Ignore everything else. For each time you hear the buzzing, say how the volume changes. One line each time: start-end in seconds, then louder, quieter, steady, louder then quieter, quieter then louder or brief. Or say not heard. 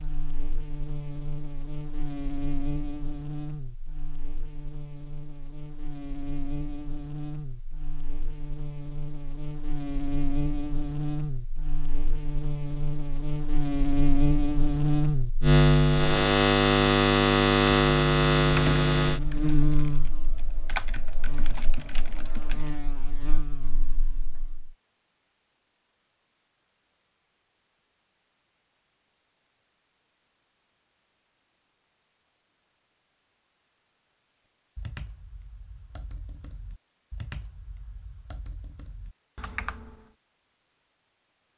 0.0-24.7 louder then quieter.